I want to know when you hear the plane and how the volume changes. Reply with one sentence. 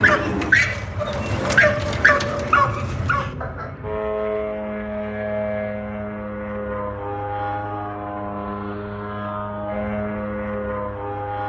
You can hear the plane from 0.0 to 11.4 s, at a steady volume.